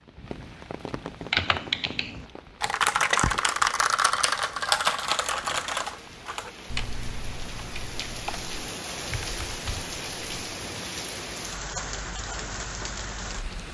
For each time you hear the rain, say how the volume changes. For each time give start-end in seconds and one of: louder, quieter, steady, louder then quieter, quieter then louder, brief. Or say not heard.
0.0-13.6 quieter then louder.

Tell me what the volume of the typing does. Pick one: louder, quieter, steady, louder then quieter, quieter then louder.
quieter.